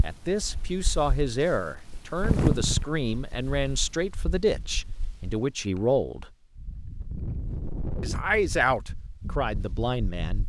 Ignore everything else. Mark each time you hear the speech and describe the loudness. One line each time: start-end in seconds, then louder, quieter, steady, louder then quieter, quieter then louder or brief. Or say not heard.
0.0-6.3 steady
8.0-10.4 brief.